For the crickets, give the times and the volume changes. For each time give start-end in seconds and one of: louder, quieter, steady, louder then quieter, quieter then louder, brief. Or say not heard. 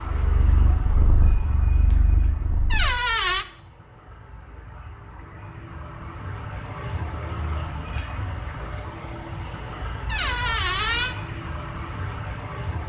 0.0-12.8 quieter then louder.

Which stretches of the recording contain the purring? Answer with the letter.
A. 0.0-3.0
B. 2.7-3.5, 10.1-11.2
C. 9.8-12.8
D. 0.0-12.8
A.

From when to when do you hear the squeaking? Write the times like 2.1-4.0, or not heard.
2.7-3.5, 10.1-11.2.